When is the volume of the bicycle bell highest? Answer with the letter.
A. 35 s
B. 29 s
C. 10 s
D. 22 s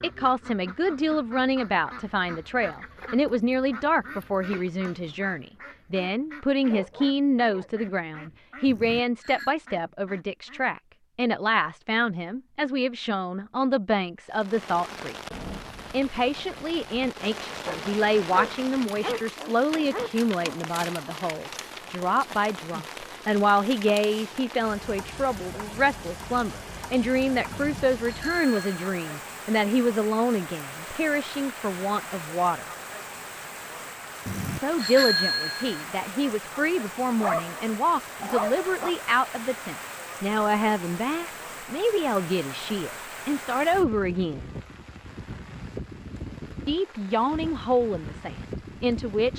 A.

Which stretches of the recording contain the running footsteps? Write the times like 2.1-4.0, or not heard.
not heard.